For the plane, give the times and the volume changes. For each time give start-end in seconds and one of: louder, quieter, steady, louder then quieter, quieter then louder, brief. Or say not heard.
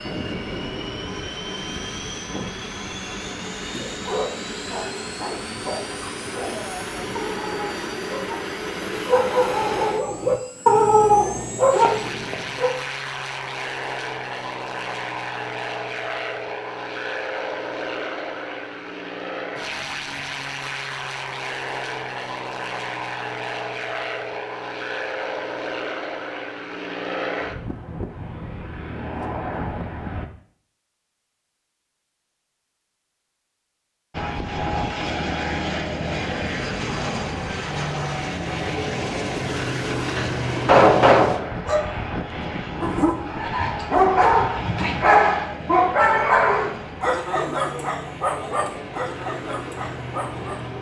0.0-30.3 steady
34.1-50.7 quieter.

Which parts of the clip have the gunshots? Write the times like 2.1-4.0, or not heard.
40.0-41.5.